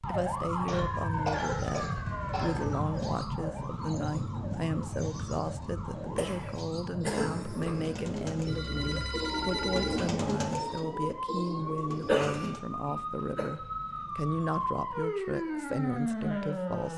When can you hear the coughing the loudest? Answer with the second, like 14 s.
12 s.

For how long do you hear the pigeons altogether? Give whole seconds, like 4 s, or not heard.
12 s.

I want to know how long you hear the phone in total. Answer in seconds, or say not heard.
2 s.